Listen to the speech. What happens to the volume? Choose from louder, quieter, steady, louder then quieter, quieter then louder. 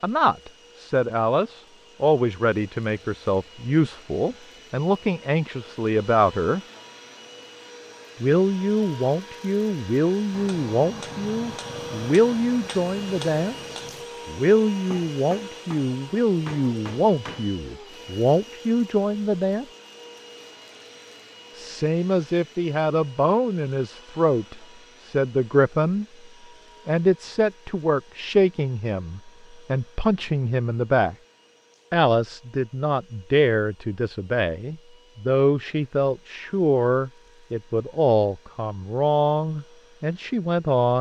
steady.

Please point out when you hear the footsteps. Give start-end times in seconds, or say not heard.
not heard.